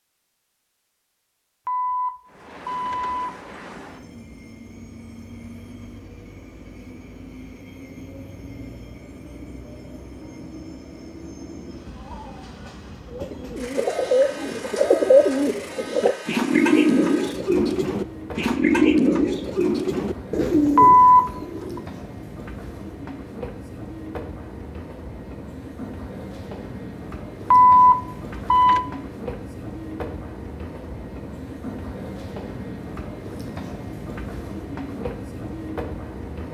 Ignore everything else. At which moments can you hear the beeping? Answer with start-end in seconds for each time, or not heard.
1.6-3.3, 20.8-21.8, 27.5-28.9.